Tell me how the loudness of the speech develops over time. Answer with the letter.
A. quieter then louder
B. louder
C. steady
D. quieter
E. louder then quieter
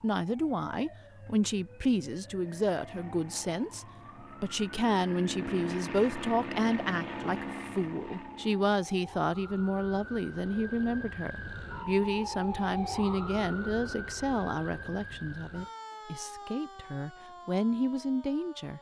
C.